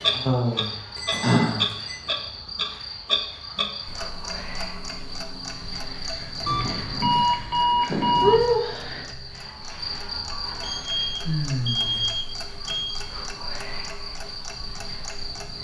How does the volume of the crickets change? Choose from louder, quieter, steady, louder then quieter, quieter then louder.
louder then quieter.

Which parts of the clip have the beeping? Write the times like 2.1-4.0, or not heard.
0.9-2.0, 6.5-8.4, 10.6-13.0.